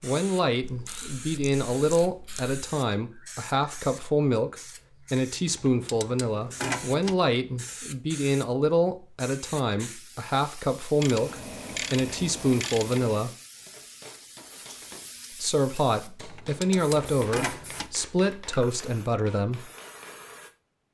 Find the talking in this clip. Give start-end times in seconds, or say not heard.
0.0-13.3, 15.3-19.7.